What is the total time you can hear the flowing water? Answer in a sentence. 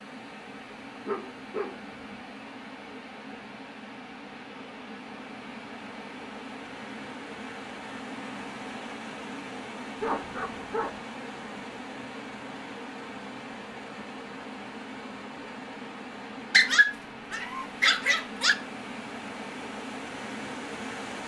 The flowing water can be heard for 21 seconds in total.